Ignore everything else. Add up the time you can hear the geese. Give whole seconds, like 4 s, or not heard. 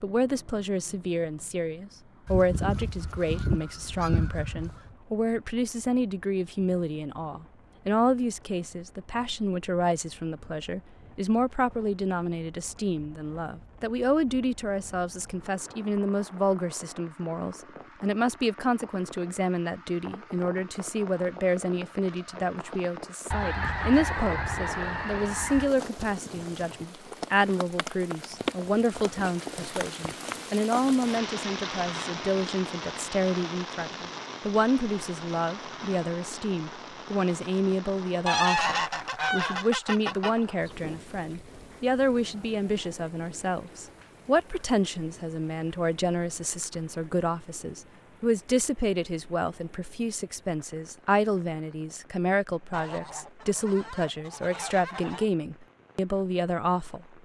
10 s.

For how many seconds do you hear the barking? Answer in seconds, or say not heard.
not heard.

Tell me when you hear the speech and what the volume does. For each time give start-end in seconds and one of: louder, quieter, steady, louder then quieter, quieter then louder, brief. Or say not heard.
0.0-57.0 steady.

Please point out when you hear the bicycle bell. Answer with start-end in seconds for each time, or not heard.
not heard.